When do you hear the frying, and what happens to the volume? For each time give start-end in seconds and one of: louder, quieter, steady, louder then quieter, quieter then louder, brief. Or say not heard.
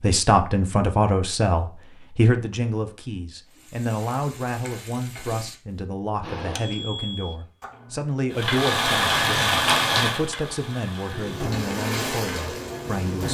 3.5-5.5 brief
8.3-13.2 quieter then louder.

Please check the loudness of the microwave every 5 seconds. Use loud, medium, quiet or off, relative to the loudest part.
off, loud, loud.